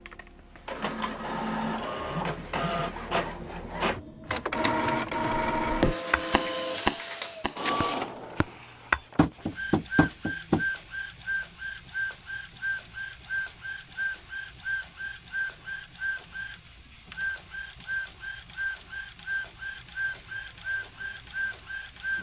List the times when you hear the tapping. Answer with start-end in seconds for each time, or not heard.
5.7-10.7.